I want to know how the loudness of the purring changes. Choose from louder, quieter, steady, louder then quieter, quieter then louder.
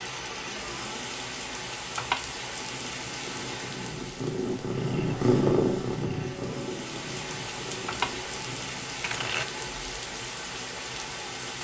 louder then quieter.